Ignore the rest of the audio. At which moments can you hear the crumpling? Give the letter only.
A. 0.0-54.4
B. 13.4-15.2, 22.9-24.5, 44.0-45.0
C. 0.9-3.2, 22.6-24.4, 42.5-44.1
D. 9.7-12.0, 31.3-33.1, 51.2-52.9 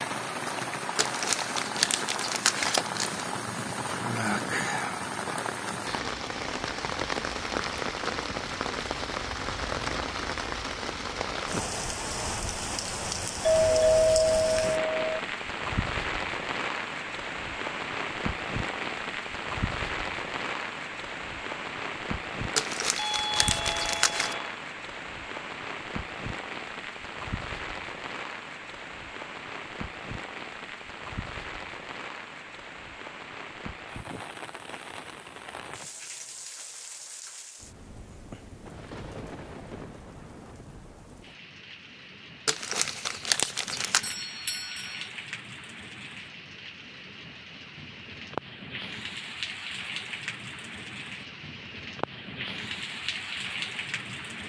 C.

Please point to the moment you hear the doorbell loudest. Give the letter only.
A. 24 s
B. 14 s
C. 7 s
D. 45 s
B.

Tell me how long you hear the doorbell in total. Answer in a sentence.
The doorbell can be heard for 4 seconds in total.